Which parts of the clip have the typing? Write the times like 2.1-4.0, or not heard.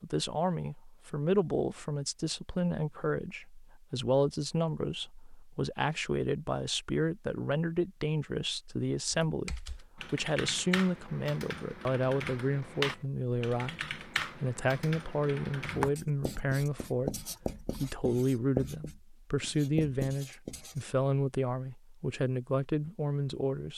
9.2-15.9.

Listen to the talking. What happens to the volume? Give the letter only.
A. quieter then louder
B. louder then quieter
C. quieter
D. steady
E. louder
D.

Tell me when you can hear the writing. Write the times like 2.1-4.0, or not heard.
15.7-20.8.